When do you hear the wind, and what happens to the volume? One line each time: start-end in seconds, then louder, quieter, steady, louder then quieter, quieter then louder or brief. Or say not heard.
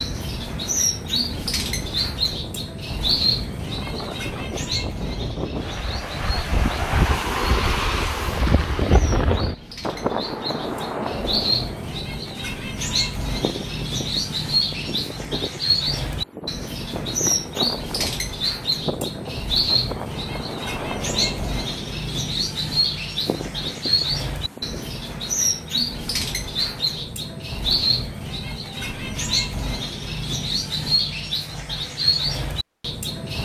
0.0-24.9 louder then quieter.